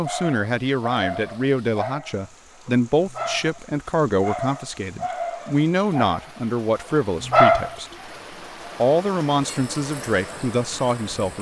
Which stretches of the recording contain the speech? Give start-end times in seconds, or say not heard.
0.0-7.8, 8.8-11.3.